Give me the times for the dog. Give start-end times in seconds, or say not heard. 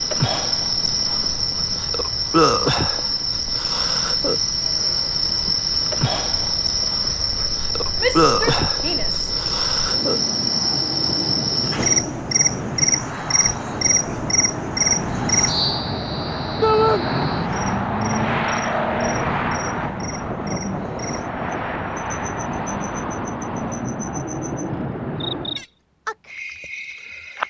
not heard.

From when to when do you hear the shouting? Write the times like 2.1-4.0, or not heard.
8.0-9.3, 16.6-17.1.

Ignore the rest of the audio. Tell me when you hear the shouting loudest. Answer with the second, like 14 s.
17 s.